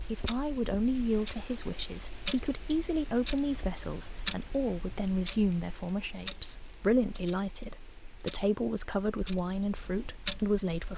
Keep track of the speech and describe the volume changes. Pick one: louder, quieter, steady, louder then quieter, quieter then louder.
steady.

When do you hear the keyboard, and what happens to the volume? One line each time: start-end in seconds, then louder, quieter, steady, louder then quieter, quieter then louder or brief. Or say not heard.
not heard.